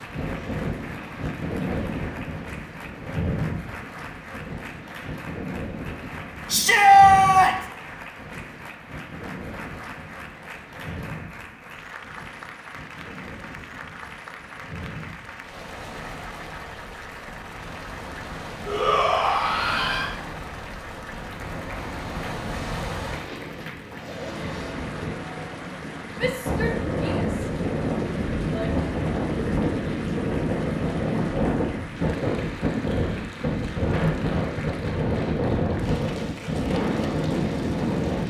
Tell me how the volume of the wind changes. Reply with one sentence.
The volume of the wind goes down, then up.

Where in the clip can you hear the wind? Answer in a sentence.
The wind can be heard from 0.0 to 38.2 s.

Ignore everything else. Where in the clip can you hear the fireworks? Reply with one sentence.
The fireworks can't be heard in this clip.